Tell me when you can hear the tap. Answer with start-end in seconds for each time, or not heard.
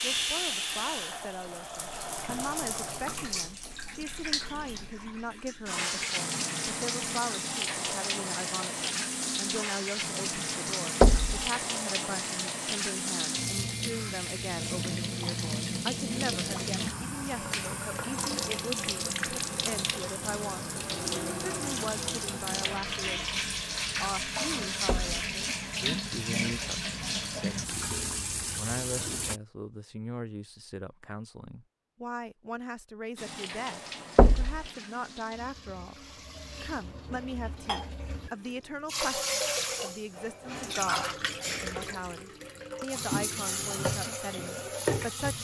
0.0-29.4, 33.1-45.3.